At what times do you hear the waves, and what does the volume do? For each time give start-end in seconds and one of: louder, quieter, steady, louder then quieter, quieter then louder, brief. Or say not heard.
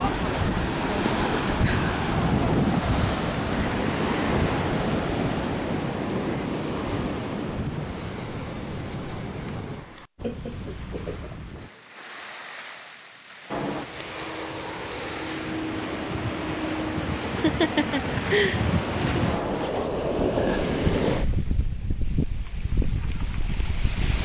0.0-24.2 quieter then louder.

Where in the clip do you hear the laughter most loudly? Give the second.
18 s.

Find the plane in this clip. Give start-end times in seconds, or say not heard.
13.4-19.9.